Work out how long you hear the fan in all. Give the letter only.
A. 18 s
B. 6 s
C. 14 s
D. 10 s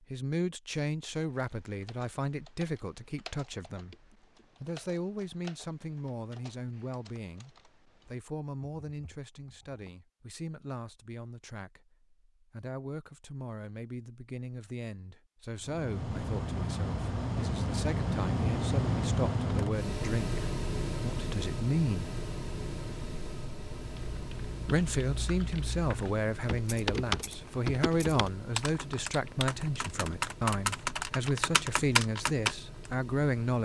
A.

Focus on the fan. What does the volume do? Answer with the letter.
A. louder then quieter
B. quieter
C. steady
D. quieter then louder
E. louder
B.